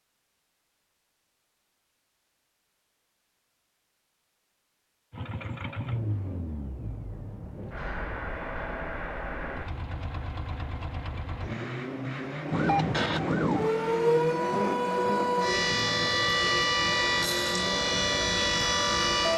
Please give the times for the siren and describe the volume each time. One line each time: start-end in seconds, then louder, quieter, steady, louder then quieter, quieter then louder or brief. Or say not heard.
12.4-19.3 steady.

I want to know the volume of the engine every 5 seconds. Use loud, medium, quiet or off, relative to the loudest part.
off, loud, loud, loud.